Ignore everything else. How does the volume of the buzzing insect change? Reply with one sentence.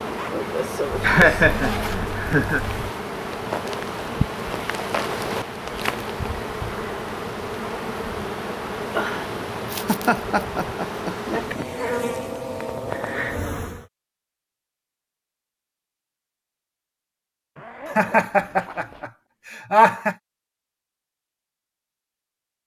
The volume of the buzzing insect stays about the same.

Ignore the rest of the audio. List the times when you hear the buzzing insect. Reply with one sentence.
The buzzing insect can be heard from 0.0 to 13.8 s.